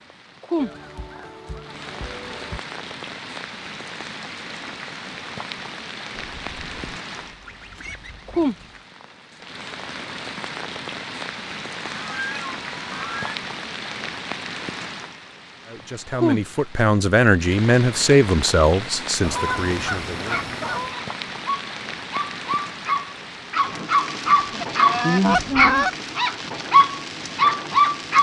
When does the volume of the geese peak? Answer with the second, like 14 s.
25 s.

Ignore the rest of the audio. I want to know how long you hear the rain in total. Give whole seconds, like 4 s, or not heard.
28 s.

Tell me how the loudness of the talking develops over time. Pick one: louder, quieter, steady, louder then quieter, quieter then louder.
louder then quieter.